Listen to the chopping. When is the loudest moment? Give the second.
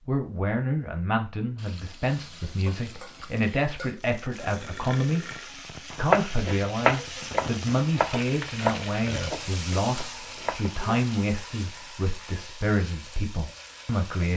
6 s.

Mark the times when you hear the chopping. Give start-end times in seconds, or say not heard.
5.9-11.1.